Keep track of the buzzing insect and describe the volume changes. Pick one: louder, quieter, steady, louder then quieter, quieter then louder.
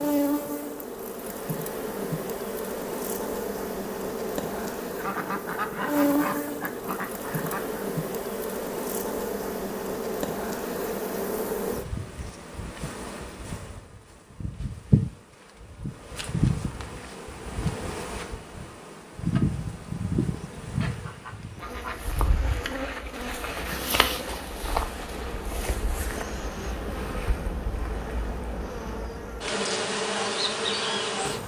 steady.